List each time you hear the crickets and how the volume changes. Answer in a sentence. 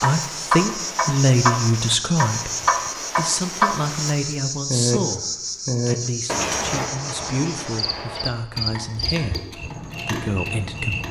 The crickets can be heard from 0.0 to 11.0 s, at a steady volume.